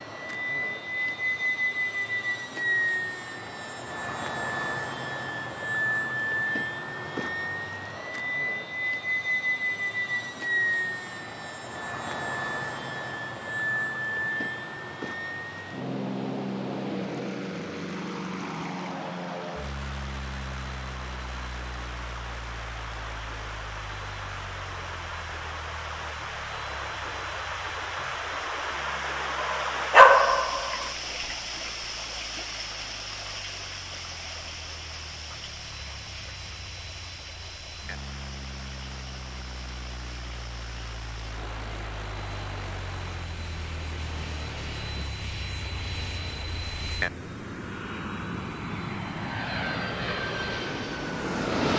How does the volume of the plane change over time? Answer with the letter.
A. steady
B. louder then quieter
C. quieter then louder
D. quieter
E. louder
C.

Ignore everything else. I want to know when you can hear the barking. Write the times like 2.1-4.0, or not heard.
29.4-30.9.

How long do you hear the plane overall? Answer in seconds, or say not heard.
52 s.